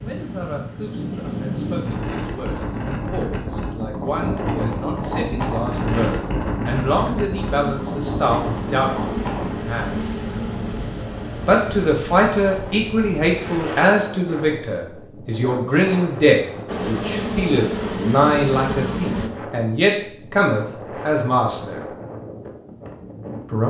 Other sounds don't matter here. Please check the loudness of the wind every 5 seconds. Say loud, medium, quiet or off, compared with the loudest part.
loud, loud, medium, medium, medium.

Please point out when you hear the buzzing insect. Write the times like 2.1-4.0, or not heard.
7.5-11.9, 16.6-19.3.